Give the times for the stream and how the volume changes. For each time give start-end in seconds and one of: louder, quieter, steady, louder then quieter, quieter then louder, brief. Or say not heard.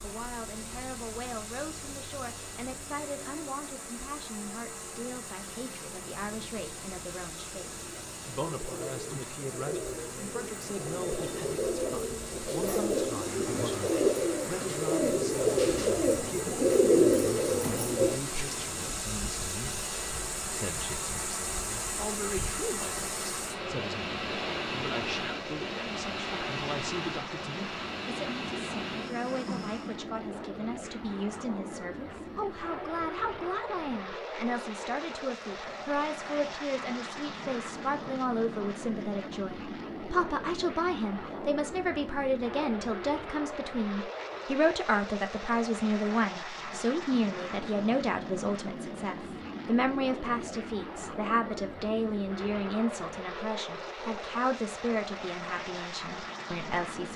0.0-29.9 louder.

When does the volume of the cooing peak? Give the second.
17 s.